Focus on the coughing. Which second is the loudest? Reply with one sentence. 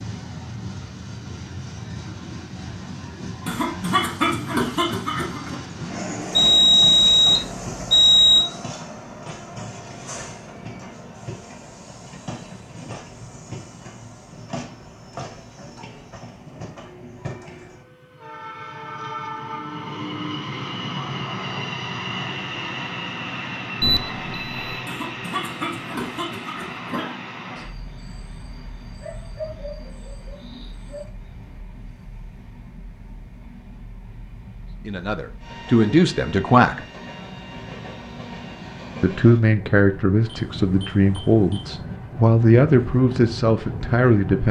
The volume of the coughing peaks at 4 seconds.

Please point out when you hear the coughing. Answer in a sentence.
The coughing can be heard from 3.5 to 5.5 s and from 24.9 to 27.2 s.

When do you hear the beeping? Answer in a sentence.
You can hear the beeping from 6.3 to 8.4 s, from 23.8 to 24.8 s and from 40.2 to 41.7 s.